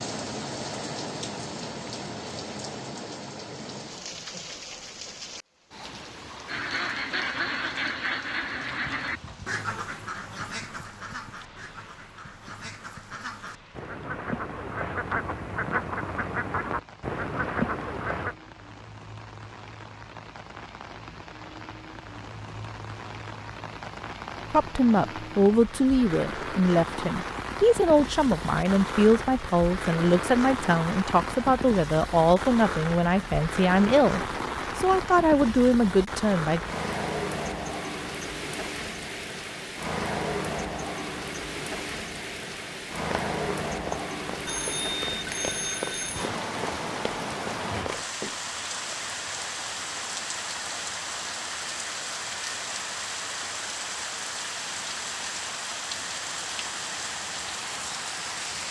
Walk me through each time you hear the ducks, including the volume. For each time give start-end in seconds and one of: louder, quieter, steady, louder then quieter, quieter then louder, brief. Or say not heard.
6.5-18.4 quieter then louder.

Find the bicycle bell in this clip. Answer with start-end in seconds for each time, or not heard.
44.5-46.2.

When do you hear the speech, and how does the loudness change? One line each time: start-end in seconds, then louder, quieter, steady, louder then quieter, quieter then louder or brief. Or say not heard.
24.5-36.6 steady.